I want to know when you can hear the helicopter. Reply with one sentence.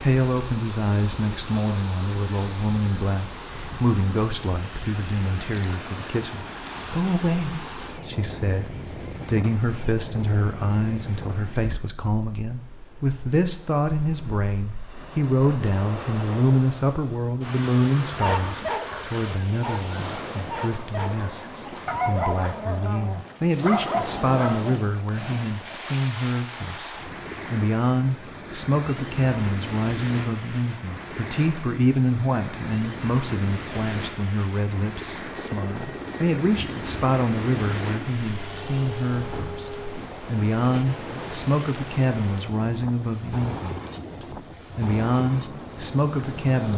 The helicopter can be heard from 35.3 to 40.1 s.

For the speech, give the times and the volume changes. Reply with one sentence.
You can hear the speech from 0.0 to 46.7 s, at a steady volume.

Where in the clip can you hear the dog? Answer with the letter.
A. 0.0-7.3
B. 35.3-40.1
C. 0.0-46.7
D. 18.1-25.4
D.